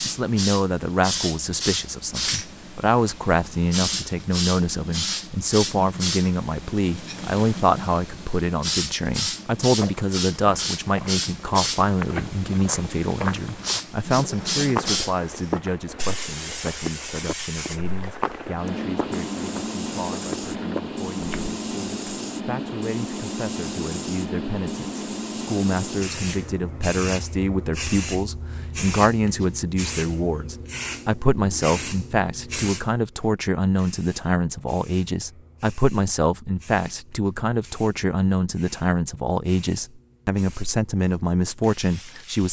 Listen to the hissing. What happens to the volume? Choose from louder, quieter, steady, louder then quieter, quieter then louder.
quieter.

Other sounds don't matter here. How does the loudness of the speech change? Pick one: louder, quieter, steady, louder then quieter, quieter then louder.
quieter then louder.